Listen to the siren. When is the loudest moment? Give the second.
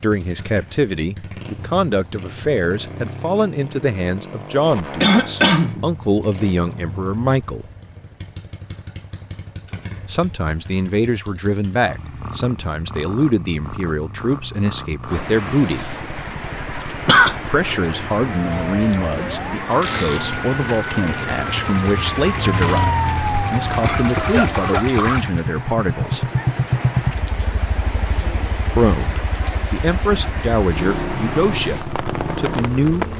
23 s.